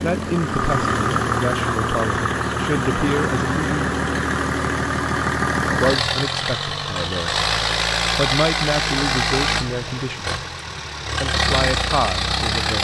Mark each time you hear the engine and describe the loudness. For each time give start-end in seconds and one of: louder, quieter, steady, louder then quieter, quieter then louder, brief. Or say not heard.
0.0-12.7 steady.